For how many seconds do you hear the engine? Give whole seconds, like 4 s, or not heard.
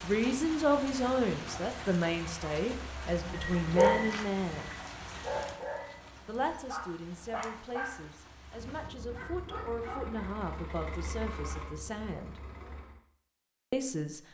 4 s.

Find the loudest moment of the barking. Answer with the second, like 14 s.
4 s.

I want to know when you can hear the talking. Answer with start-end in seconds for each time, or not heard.
0.0-4.8, 6.2-12.3, 13.7-14.2.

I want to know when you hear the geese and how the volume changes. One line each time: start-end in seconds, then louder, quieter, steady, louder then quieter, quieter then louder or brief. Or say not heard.
not heard.